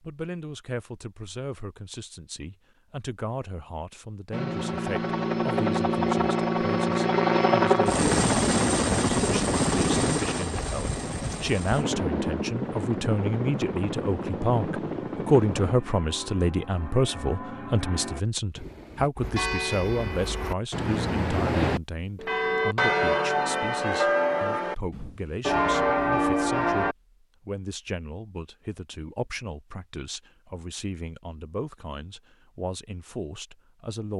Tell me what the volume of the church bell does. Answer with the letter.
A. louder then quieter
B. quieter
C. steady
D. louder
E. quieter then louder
D.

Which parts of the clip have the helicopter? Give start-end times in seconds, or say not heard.
4.3-15.8.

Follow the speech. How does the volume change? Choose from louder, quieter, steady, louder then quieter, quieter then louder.
louder then quieter.